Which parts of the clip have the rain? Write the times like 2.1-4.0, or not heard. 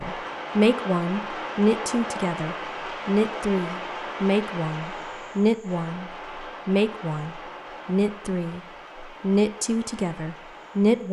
0.0-11.0.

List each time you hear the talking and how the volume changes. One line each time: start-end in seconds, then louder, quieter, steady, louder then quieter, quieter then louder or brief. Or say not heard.
0.0-11.0 steady.